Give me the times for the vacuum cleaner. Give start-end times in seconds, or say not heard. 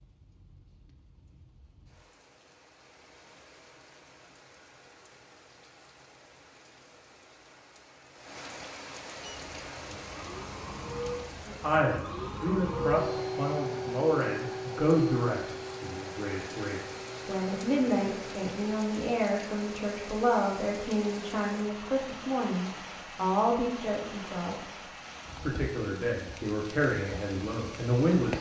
9.2-18.8.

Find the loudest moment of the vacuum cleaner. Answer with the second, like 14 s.
13 s.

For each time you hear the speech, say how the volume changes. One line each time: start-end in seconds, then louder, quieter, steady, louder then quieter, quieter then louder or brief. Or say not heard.
11.4-24.8 steady
25.4-28.3 brief.